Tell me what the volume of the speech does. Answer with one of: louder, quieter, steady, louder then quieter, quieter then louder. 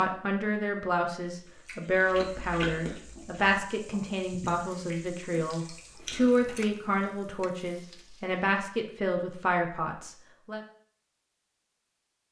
steady.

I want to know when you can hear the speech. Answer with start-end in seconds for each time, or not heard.
0.0-10.6.